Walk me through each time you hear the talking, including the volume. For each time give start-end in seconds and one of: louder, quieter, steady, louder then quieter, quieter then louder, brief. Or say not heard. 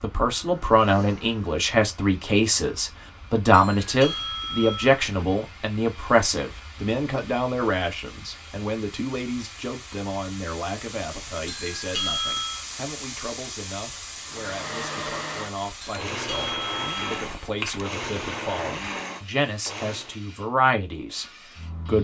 0.0-21.9 quieter then louder.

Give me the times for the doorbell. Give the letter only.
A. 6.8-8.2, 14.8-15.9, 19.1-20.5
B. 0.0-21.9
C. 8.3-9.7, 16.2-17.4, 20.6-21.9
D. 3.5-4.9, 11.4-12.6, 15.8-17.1
D.